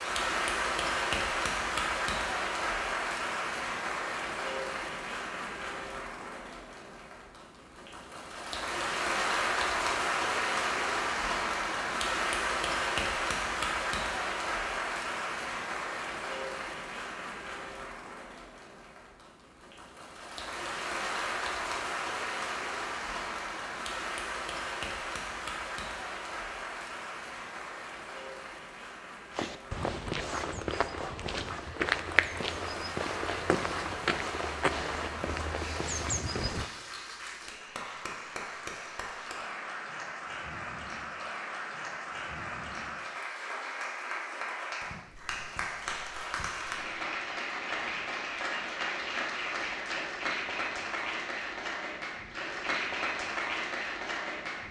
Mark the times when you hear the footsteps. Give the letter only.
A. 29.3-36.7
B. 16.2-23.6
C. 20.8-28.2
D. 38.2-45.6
A.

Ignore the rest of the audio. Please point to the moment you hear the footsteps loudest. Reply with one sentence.
The volume of the footsteps peaks at 32 seconds.